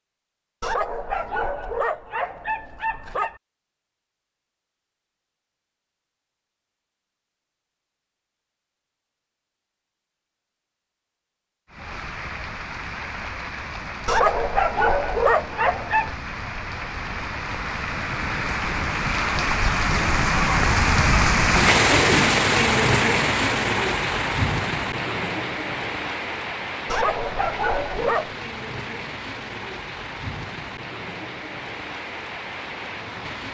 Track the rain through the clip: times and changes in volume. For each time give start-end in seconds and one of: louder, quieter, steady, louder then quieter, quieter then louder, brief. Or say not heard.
11.7-33.4 louder then quieter.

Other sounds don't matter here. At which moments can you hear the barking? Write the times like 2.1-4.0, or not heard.
0.6-3.4, 14.1-16.2, 26.9-28.4.